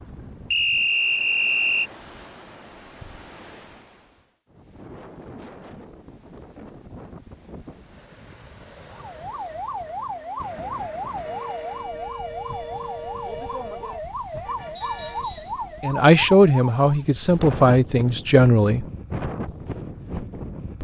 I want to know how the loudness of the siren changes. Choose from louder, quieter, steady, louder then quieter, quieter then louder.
steady.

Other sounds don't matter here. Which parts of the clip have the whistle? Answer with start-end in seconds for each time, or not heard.
0.5-1.9, 14.8-15.6.